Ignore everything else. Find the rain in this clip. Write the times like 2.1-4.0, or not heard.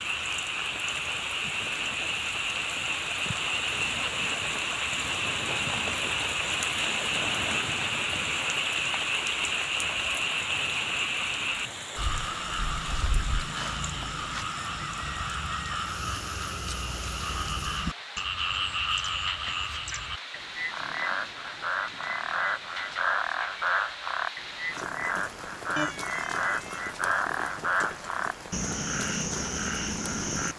0.0-30.5.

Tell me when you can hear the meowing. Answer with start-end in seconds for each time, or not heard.
25.8-26.8.